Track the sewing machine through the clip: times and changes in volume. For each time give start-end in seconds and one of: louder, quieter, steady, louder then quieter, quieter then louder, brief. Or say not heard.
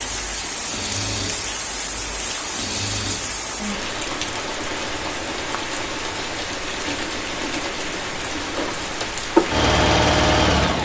0.0-10.8 louder.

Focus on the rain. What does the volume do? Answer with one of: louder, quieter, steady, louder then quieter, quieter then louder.
steady.